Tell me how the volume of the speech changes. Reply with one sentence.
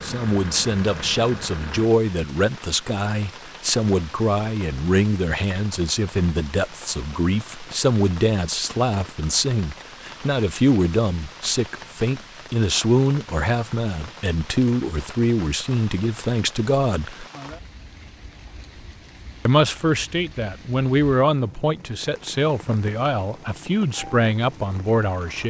The loudness of the speech stays about the same.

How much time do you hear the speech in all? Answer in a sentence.
The speech can be heard for 23 seconds in total.